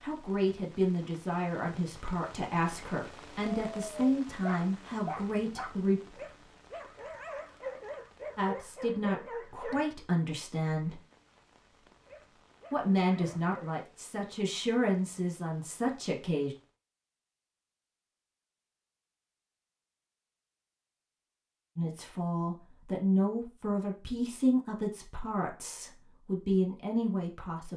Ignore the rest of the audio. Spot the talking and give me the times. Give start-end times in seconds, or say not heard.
0.0-6.0, 8.3-11.0, 12.7-16.6, 21.8-27.7.